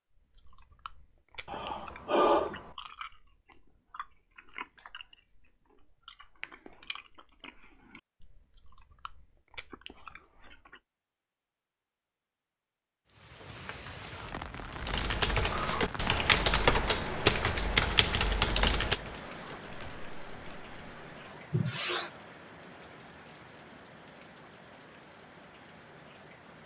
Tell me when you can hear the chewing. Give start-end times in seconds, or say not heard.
0.1-10.8.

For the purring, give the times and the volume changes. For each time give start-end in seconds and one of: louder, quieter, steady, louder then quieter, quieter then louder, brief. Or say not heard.
not heard.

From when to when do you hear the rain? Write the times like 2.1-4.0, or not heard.
13.1-26.6.